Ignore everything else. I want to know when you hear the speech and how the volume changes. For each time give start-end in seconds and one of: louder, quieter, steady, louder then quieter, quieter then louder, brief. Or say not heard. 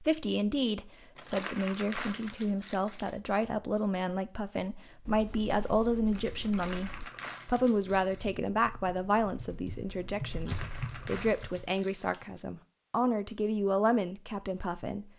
0.0-15.1 steady.